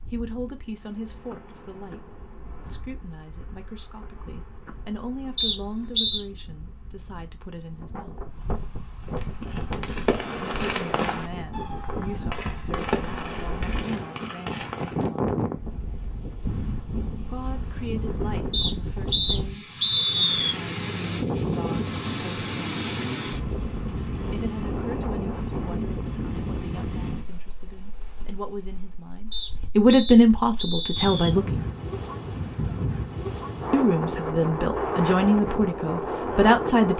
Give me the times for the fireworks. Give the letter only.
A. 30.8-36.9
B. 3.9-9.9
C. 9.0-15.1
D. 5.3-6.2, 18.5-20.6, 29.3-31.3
C.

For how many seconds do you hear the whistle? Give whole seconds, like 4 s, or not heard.
5 s.